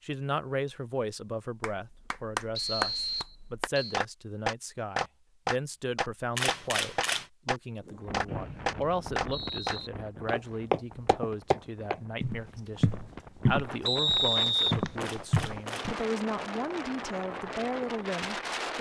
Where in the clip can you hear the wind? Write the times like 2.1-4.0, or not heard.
7.8-18.7.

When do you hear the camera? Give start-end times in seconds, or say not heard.
6.3-7.2, 15.0-15.9.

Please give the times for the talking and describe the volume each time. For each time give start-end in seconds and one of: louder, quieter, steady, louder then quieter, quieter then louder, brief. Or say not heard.
0.0-18.7 steady.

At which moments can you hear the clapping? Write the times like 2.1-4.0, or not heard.
1.6-9.8.